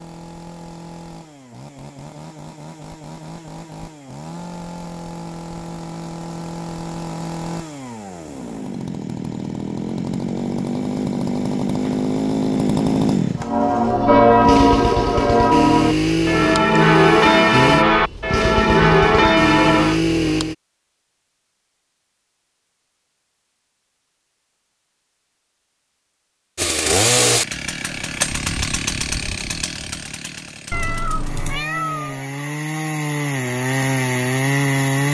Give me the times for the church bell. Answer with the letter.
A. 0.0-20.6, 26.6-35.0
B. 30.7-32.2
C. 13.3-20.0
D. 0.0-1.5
C.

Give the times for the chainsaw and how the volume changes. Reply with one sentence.
You can hear the chainsaw from 0.0 to 20.6 s, getting louder; and from 26.6 to 35.0 s, getting quieter then louder.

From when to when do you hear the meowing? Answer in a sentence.
The meowing can be heard from 30.7 to 32.2 s.